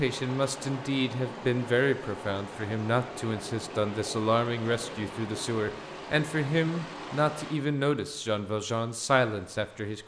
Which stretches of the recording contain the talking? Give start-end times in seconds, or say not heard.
0.0-10.0.